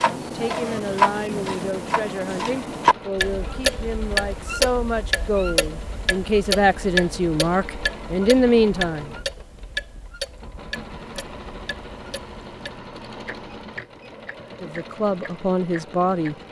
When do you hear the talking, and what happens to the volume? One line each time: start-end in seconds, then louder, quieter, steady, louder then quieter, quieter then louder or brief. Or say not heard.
0.0-9.2 louder
14.6-16.4 brief.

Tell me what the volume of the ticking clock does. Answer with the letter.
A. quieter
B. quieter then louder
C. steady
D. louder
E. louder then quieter
A.